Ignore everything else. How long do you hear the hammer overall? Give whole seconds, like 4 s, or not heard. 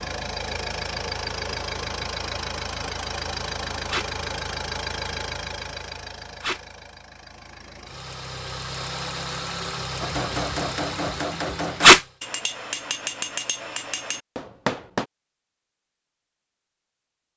5 s.